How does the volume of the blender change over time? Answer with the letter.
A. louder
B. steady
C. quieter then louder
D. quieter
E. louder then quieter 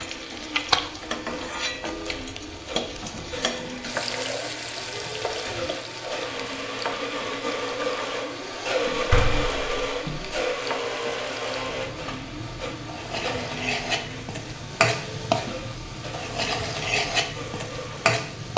E.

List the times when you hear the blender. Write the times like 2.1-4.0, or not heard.
0.0-18.5.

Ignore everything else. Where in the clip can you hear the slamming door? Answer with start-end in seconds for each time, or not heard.
8.8-10.4.